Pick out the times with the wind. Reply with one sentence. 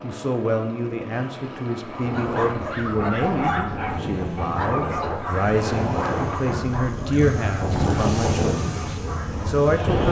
You can hear the wind from 2.0 to 10.0 s.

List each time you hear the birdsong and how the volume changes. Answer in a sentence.
The birdsong can't be heard in this clip.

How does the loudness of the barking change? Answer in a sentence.
The volume of the barking goes down.